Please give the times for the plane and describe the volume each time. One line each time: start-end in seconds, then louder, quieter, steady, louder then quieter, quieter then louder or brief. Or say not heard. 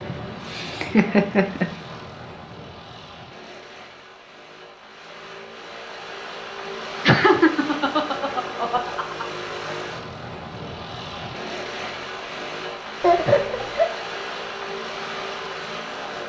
0.0-16.2 louder.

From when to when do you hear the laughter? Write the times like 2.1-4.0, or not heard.
0.1-1.7, 7.0-9.2, 13.0-13.9.